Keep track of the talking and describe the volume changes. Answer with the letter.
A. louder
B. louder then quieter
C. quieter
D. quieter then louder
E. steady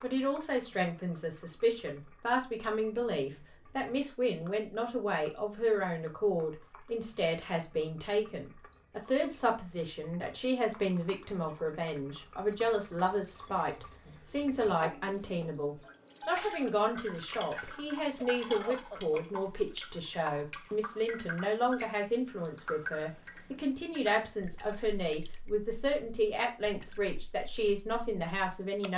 E.